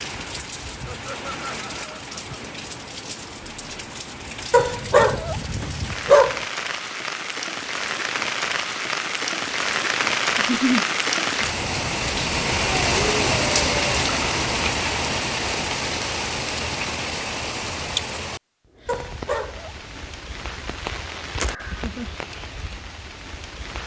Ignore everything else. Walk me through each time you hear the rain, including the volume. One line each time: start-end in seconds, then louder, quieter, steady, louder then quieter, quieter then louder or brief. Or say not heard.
0.0-23.8 louder then quieter.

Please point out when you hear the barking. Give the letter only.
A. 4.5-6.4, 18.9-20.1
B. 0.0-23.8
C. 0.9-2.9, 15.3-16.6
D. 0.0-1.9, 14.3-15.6
A.